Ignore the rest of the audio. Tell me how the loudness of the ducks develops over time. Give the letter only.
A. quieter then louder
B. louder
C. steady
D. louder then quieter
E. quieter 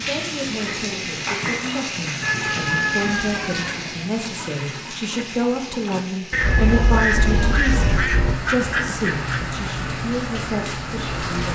A.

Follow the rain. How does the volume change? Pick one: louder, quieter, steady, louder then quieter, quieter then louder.
quieter then louder.